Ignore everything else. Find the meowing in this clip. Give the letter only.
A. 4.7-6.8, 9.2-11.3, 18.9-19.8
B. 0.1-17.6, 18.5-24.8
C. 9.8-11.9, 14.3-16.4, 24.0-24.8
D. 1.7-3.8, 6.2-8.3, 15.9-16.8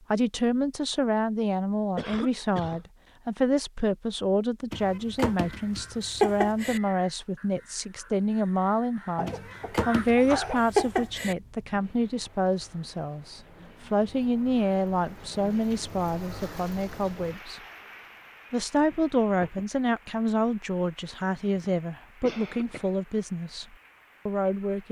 A.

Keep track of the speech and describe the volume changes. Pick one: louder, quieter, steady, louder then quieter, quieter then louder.
steady.